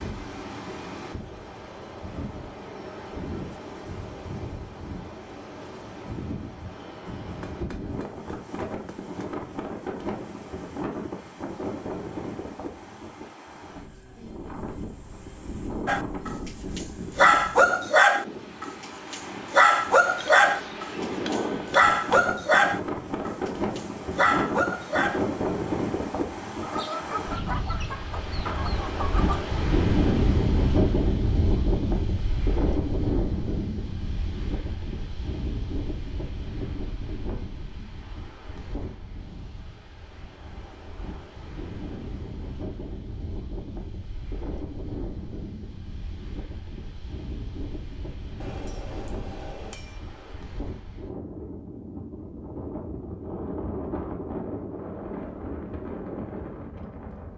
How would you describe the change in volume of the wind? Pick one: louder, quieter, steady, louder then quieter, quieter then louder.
louder then quieter.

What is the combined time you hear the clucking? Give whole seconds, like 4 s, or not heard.
3 s.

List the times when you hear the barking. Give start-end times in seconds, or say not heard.
15.8-25.2.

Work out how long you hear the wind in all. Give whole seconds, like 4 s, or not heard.
57 s.